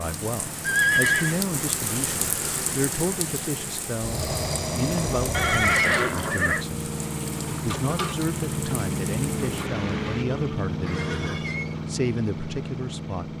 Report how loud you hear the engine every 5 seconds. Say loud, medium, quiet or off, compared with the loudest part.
medium, loud, loud.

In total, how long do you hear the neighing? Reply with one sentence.
You can hear the neighing for 3 seconds altogether.